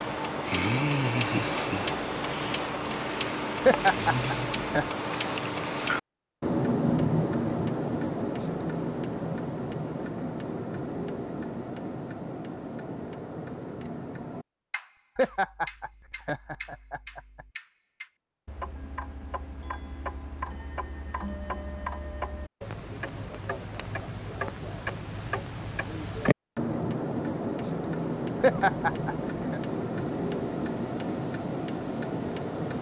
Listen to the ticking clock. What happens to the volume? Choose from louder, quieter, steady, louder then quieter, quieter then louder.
quieter then louder.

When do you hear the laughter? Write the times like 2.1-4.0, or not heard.
3.6-4.8, 15.2-17.4, 28.4-29.6.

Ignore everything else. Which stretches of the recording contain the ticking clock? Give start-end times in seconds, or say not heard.
0.0-32.7.